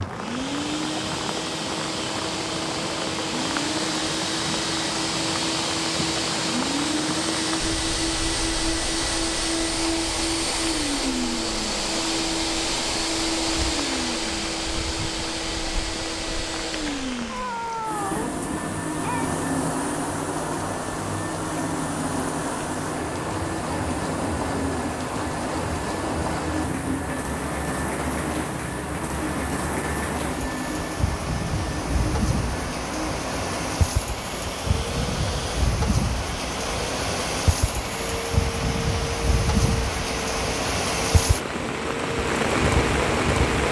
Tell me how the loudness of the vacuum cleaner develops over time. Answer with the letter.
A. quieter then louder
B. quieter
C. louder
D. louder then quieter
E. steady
B.